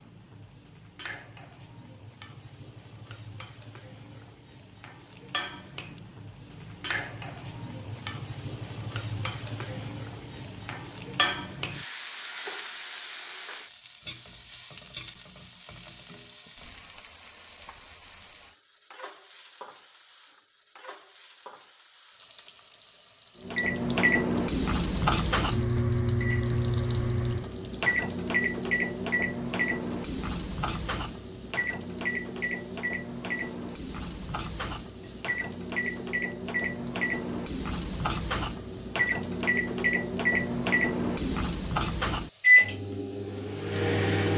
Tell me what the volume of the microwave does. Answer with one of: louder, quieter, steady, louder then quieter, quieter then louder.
quieter then louder.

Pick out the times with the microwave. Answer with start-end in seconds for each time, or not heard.
23.4-44.3.